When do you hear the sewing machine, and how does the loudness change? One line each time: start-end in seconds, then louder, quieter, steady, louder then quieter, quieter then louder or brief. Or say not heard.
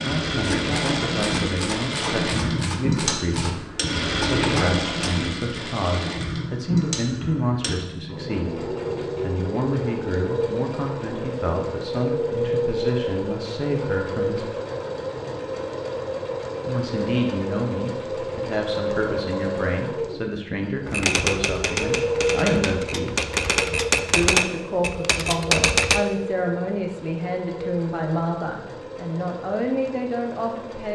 0.0-30.9 quieter.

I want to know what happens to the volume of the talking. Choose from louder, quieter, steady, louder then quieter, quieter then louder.
steady.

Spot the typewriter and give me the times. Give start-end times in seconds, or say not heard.
0.4-5.2, 20.9-26.0.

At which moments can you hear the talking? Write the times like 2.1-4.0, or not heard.
0.0-14.5, 16.6-23.1, 24.1-30.9.